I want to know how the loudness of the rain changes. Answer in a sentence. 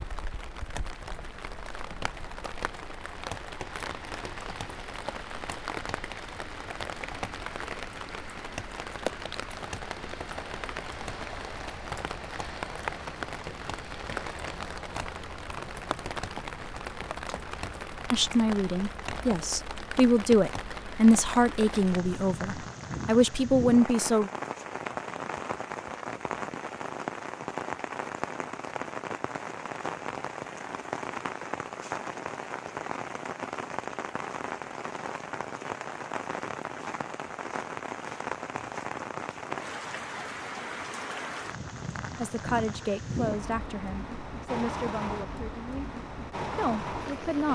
The loudness of the rain stays about the same.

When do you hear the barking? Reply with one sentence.
The barking can't be heard in this clip.